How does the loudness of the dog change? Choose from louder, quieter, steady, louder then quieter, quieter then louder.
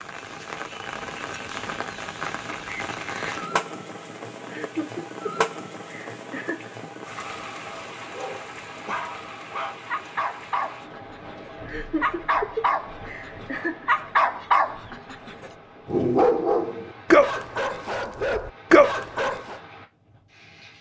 louder.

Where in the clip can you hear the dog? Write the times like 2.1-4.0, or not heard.
8.0-19.6.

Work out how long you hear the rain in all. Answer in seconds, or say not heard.
21 s.